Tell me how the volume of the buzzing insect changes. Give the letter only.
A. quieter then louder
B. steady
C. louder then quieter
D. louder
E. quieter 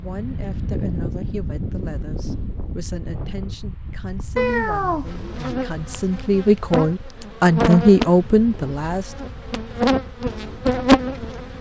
D.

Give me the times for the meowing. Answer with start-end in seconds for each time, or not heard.
4.3-5.5.